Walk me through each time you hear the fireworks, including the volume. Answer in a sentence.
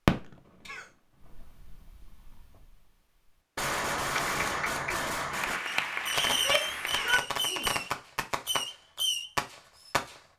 The fireworks can be heard briefly from 0.1 to 2.8 s; and from 3.5 to 10.2 s, at a steady volume.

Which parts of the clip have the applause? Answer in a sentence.
The applause can be heard from 4.0 to 7.2 s.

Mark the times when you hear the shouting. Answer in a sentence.
You can hear the shouting from 6.2 to 7.8 s.